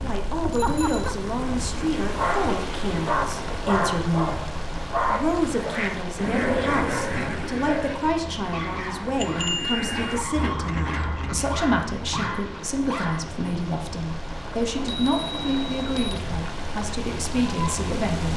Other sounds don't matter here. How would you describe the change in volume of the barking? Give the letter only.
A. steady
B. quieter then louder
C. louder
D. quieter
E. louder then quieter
D.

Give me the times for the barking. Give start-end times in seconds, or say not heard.
2.0-13.2.